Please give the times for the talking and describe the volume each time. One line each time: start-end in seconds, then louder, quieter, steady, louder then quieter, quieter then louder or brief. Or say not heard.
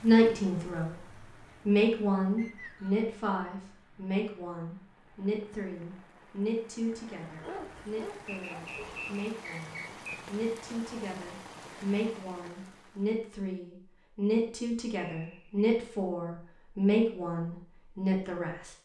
0.0-1.1 brief
1.6-18.7 quieter then louder.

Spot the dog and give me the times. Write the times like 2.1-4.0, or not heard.
7.4-9.1.